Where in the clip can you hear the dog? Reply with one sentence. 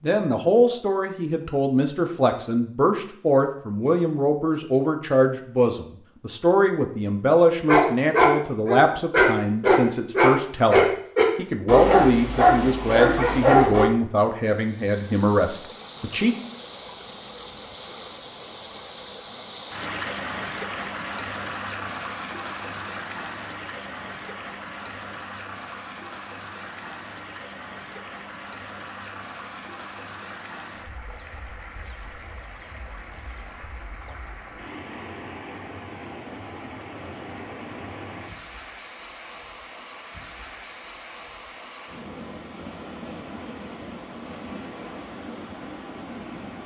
The dog can be heard from 7.7 to 13.8 s.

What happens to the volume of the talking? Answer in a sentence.
The loudness of the talking stays about the same.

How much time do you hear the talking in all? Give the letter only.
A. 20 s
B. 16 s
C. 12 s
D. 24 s
B.